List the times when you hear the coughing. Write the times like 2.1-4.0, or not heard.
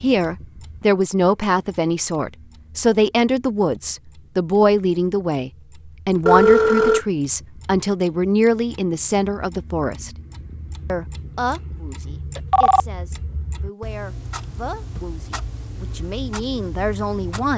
not heard.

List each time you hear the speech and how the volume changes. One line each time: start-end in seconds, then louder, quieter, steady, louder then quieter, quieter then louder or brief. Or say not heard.
0.0-10.2 steady
10.8-17.5 quieter then louder.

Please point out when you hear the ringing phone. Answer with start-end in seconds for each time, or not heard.
6.2-7.0, 12.3-12.8.